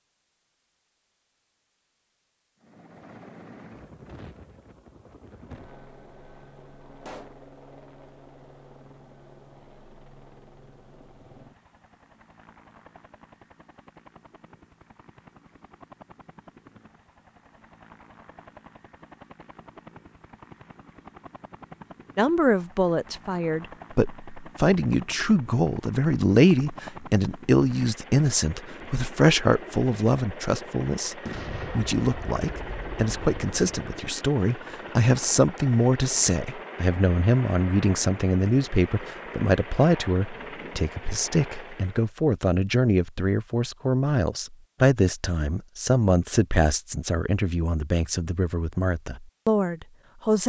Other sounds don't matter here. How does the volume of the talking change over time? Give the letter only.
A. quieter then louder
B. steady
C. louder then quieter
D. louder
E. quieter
B.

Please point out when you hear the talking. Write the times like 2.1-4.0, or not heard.
22.1-50.4.